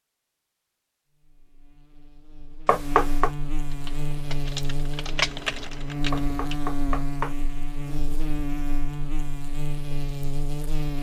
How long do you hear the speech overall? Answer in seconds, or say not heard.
not heard.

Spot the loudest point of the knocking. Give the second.
3 s.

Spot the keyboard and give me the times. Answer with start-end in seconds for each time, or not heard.
3.7-6.6.